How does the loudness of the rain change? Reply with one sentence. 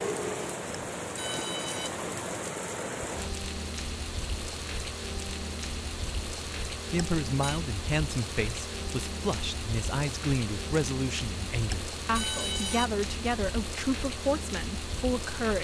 The loudness of the rain stays about the same.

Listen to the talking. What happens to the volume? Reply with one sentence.
The volume of the talking stays about the same.